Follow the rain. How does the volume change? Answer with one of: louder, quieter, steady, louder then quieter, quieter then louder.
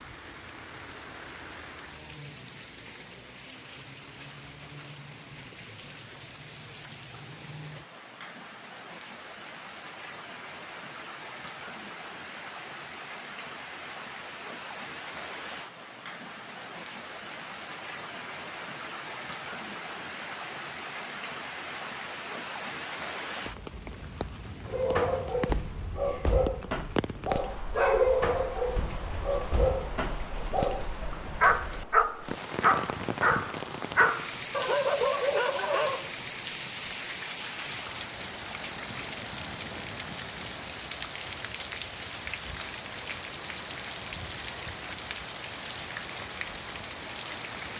louder.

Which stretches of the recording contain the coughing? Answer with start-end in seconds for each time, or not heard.
not heard.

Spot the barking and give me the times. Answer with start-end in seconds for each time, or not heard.
24.6-36.1.